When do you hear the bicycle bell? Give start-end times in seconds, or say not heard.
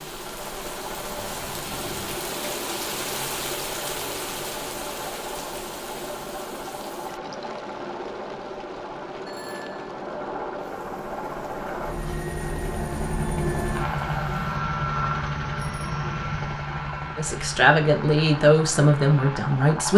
1.1-2.2, 9.2-9.9, 15.6-16.6.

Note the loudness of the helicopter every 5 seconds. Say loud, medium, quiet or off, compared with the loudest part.
medium, medium, loud, loud.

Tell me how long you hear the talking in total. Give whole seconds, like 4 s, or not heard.
3 s.